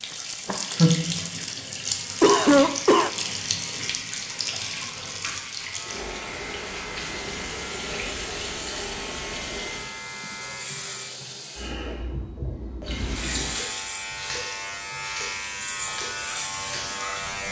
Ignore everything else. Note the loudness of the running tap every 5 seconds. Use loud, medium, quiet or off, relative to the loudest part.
loud, medium, medium, medium.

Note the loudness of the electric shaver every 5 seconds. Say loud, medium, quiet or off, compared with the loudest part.
medium, medium, loud, loud.